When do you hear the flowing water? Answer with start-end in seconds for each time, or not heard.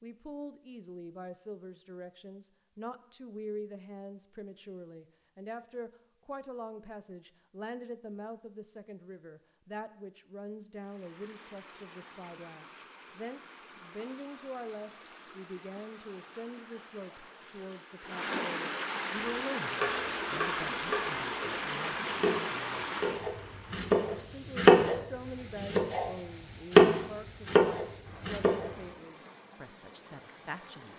10.8-30.9.